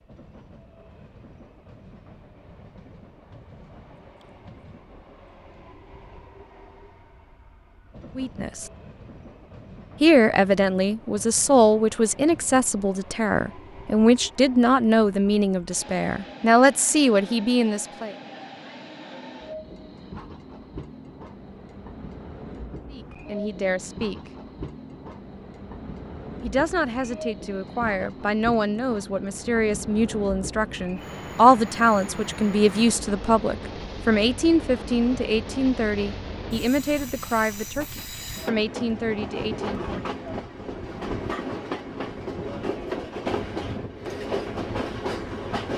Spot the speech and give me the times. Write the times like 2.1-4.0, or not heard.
8.2-8.7, 10.0-18.1, 22.9-24.3, 26.4-40.0.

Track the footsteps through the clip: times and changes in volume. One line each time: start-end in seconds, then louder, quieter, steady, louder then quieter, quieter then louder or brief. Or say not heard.
not heard.